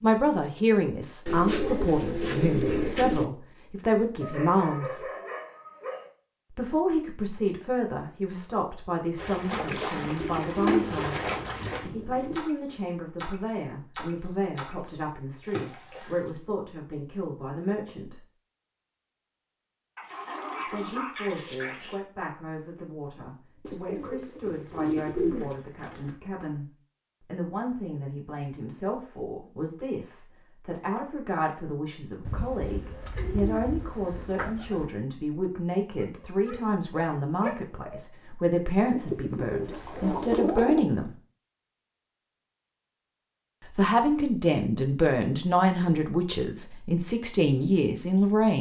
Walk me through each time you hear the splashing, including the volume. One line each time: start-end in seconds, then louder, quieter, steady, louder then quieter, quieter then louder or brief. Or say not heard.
9.2-16.4 quieter.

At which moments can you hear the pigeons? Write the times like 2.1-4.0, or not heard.
1.2-3.2, 10.2-12.4, 23.6-26.1, 32.2-34.9, 38.9-40.9.